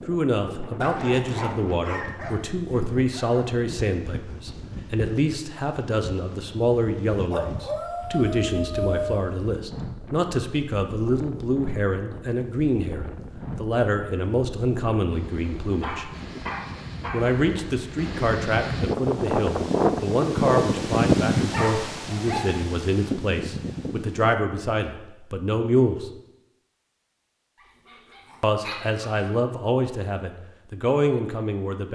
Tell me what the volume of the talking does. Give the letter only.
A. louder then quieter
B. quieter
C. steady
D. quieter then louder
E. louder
C.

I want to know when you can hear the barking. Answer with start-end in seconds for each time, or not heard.
0.8-3.5, 7.3-9.2, 15.8-17.3, 21.5-22.6, 27.6-29.3.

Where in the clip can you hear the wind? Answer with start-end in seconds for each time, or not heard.
0.0-24.4.